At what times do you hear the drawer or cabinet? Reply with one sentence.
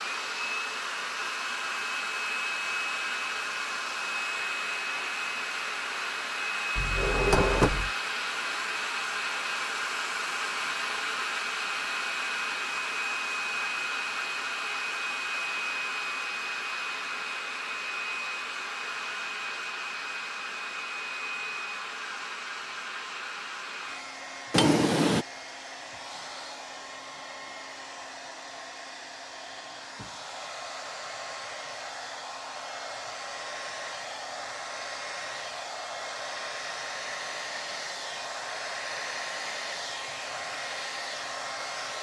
You can hear the drawer or cabinet from 6.8 to 7.9 s and from 24.5 to 25.2 s.